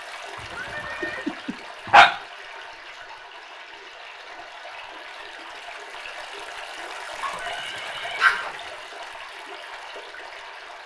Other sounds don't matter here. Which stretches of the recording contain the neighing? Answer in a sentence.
The neighing can be heard from 0.3 to 1.4 s and from 7.2 to 8.6 s.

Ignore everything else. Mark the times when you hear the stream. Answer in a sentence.
The stream can be heard from 0.0 to 10.8 s.